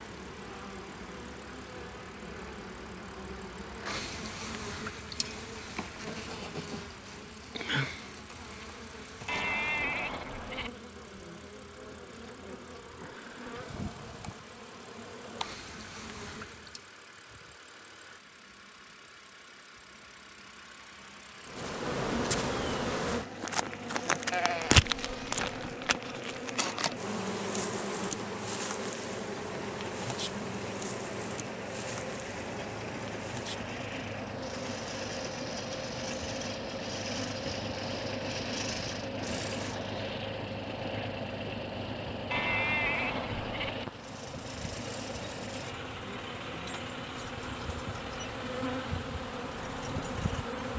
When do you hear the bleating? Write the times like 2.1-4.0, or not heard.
9.2-10.7, 24.3-25.7, 42.3-43.7.